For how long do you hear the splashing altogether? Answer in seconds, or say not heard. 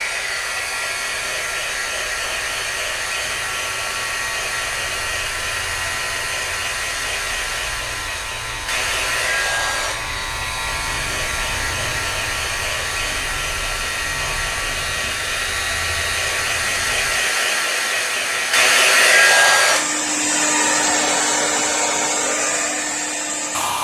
not heard.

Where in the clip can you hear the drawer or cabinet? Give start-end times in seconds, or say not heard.
not heard.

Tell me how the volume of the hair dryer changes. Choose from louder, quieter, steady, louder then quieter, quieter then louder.
louder.